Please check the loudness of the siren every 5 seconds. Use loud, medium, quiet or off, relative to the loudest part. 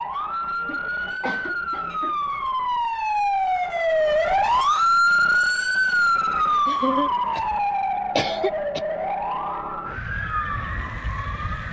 loud, loud, medium.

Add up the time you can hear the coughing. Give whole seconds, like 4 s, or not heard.
4 s.